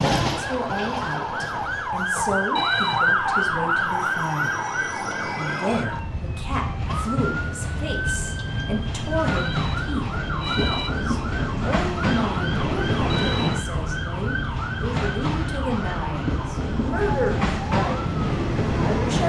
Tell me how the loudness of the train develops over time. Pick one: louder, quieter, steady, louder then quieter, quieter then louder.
louder.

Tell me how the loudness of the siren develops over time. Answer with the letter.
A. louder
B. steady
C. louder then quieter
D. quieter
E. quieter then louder
D.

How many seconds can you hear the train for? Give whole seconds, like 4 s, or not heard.
19 s.